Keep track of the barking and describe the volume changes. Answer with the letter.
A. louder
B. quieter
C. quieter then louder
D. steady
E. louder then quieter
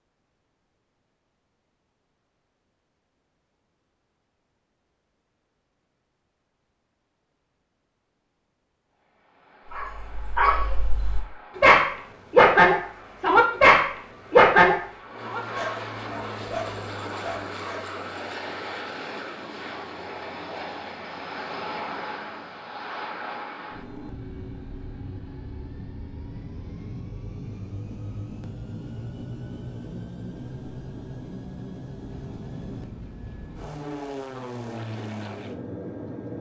E.